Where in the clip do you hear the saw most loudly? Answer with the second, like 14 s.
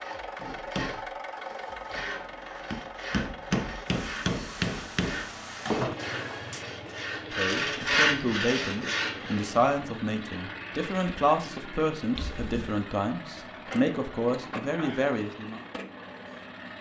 8 s.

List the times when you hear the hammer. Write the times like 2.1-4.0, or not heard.
0.3-6.7.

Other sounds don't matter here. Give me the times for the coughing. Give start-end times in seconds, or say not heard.
12.2-12.8.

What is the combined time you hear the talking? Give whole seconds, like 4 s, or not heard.
8 s.